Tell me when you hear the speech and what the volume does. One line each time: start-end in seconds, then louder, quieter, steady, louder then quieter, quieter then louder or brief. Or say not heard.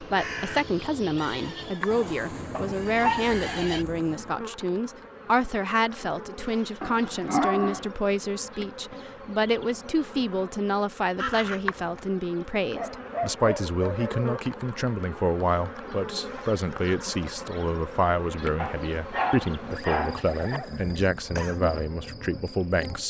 0.0-23.0 steady.